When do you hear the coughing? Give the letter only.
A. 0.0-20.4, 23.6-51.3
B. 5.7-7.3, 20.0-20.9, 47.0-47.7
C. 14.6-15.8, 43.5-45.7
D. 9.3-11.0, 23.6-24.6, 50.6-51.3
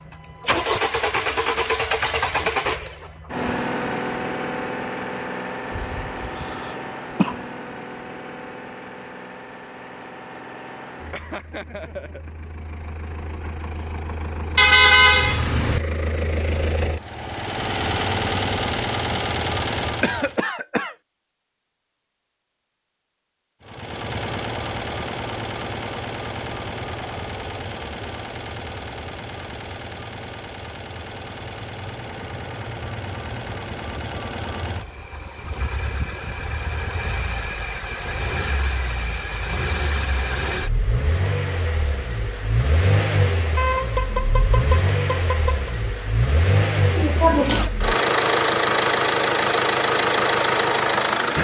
B.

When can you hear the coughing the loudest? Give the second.
47 s.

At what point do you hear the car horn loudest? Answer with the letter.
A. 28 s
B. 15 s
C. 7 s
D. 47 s
B.